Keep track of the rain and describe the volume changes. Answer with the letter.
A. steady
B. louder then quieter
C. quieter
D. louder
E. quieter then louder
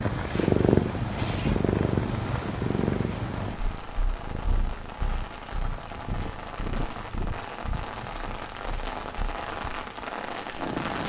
D.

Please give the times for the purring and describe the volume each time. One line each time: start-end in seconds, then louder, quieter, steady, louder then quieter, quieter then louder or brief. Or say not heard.
0.0-11.0 quieter.